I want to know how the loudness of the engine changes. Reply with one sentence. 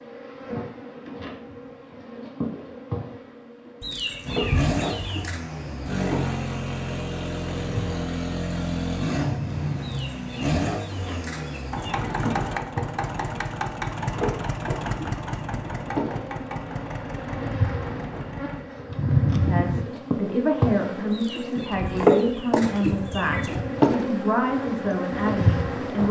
The loudness of the engine goes down.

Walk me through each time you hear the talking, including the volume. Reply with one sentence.
The talking can be heard from 19.4 to 26.0 s, at a steady volume.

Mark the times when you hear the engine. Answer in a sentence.
You can hear the engine from 4.2 to 18.6 s.